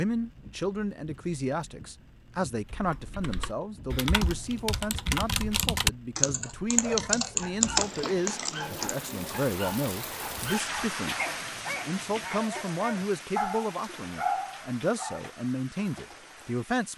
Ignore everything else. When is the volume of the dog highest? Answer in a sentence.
The loudest moment of the dog is at 14 seconds.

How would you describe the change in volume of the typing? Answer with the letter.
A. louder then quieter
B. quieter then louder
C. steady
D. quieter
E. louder
E.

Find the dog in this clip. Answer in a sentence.
You can hear the dog from 6.4 to 15.2 s.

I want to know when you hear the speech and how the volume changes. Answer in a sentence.
The speech can be heard from 0.0 to 16.9 s, at a steady volume.